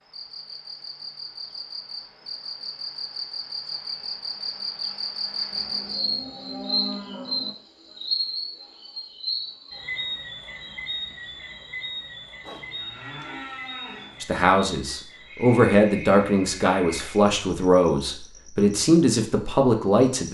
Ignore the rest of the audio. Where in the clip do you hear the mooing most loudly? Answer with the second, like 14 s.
7 s.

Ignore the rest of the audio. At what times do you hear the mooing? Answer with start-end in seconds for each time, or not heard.
5.5-7.5, 12.4-14.2.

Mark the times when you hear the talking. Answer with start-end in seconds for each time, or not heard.
14.2-20.3.